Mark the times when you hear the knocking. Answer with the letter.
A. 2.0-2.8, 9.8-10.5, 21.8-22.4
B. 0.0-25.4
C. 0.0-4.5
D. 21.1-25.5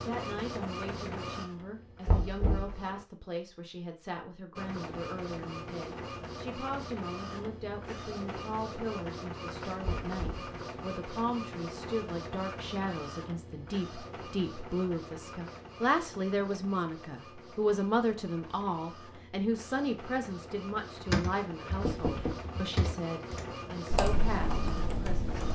A.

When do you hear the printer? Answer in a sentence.
The printer can be heard from 0.0 to 3.0 s and from 4.5 to 25.5 s.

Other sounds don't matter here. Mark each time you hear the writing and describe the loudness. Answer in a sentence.
You can't hear the writing here.